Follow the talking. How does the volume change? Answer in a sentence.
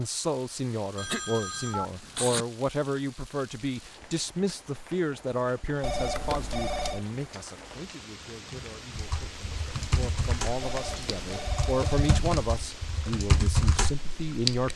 The loudness of the talking goes down, then up.